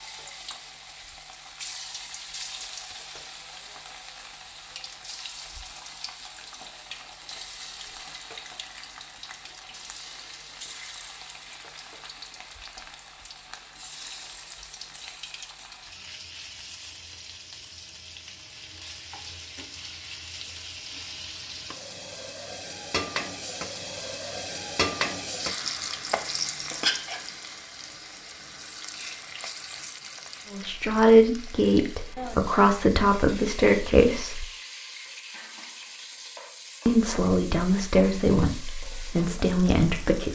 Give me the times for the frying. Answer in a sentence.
You can hear the frying from 0.0 to 40.3 s.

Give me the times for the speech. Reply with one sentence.
You can hear the speech from 30.5 to 34.5 s and from 36.9 to 40.3 s.